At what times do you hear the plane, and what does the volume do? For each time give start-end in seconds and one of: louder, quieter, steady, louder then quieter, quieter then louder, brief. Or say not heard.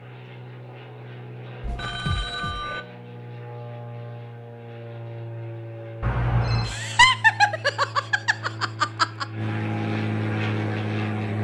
0.0-11.3 louder.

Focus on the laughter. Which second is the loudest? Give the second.
7 s.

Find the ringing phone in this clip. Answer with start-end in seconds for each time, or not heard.
1.6-2.8, 6.0-6.8.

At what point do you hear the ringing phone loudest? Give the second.
6 s.